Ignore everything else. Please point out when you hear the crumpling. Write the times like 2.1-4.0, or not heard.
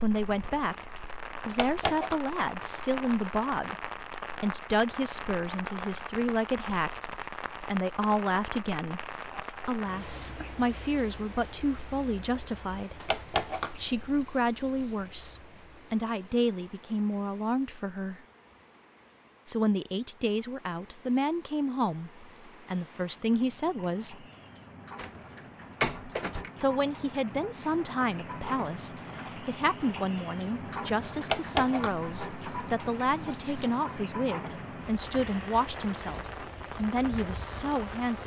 1.4-2.2, 13.0-14.9, 31.2-33.7.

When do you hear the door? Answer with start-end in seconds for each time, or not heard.
24.9-26.5.